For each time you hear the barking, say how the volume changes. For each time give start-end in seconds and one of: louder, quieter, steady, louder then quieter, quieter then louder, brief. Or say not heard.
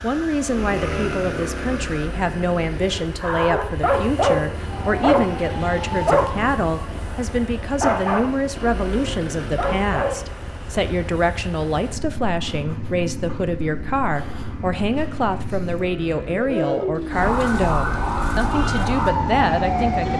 3.2-10.3 quieter.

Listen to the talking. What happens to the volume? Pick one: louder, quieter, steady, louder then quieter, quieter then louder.
steady.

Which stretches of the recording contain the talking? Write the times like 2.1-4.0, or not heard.
0.0-20.1.